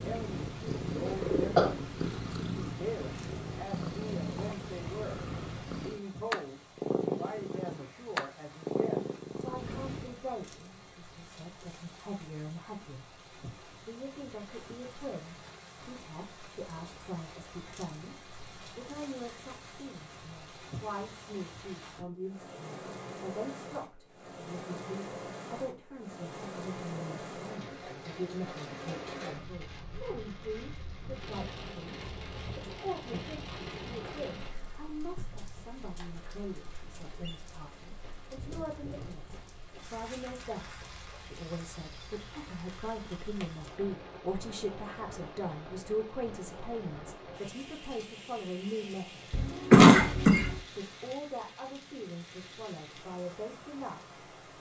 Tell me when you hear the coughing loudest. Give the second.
50 s.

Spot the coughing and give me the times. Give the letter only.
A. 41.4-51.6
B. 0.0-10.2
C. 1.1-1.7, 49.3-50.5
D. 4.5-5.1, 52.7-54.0
C.